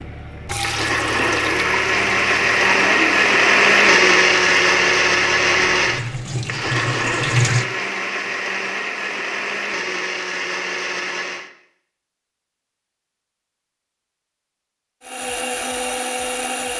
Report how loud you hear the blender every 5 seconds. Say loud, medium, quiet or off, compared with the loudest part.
loud, medium, medium, medium.